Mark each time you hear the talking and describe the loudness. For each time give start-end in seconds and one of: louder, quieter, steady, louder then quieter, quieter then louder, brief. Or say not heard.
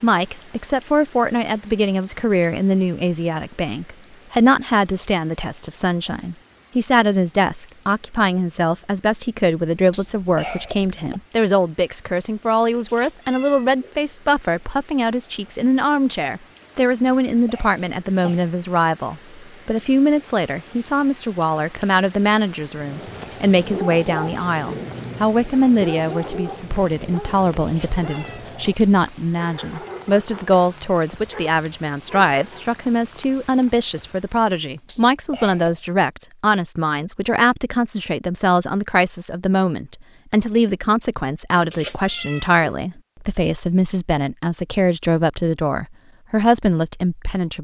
0.0-47.6 steady.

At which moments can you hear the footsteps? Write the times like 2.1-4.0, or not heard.
not heard.